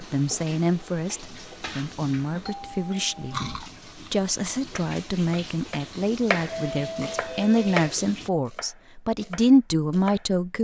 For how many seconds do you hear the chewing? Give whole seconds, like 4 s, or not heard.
2 s.